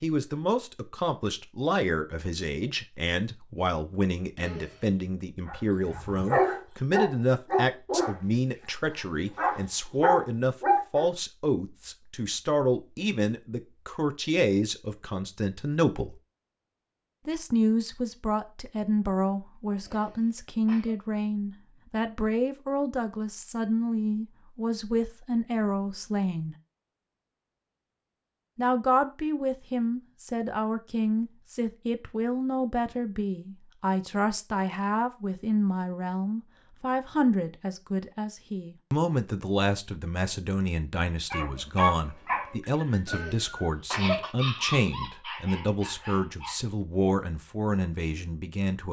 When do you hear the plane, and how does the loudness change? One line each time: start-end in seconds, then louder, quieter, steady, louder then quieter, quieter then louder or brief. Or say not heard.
not heard.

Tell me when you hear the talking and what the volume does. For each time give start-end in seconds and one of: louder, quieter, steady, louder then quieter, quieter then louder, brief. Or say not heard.
0.0-16.2 steady
17.2-26.6 steady
28.6-48.8 steady.